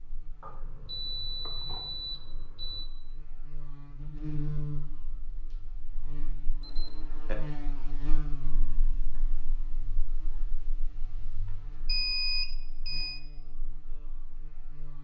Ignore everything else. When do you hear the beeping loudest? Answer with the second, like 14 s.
12 s.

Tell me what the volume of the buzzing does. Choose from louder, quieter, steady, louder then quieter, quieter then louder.
louder then quieter.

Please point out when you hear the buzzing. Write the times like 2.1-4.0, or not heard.
0.0-14.9.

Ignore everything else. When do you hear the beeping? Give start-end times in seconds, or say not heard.
0.4-2.9, 6.6-7.3, 11.8-13.2.